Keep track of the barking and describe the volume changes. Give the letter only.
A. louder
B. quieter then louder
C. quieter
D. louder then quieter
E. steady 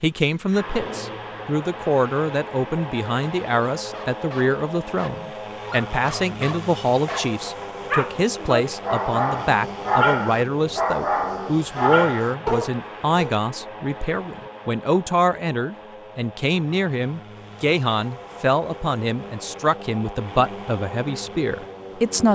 A.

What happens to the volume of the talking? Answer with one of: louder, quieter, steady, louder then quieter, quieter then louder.
steady.